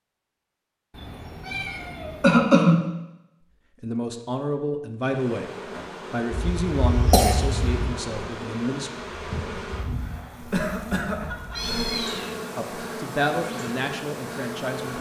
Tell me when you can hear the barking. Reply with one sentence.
You can't hear the barking here.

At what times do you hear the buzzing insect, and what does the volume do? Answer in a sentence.
The buzzing insect can be heard from 5.0 to 14.9 s, at a steady volume.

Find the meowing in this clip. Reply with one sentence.
You can hear the meowing from 0.9 to 2.5 s and from 11.2 to 12.3 s.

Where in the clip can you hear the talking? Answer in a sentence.
The talking can be heard from 3.8 to 5.5 s, from 6.1 to 8.9 s and from 12.6 to 14.9 s.